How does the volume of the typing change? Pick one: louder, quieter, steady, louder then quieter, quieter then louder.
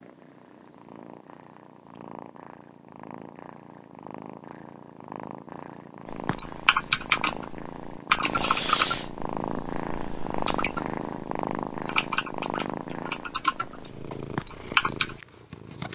quieter then louder.